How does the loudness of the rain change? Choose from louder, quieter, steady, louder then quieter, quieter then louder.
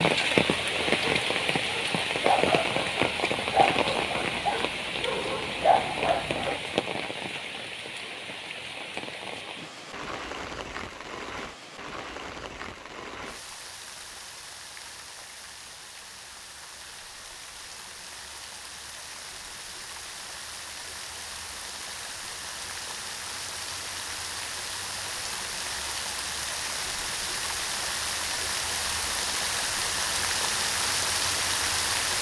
quieter then louder.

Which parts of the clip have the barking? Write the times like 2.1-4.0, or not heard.
0.4-6.6.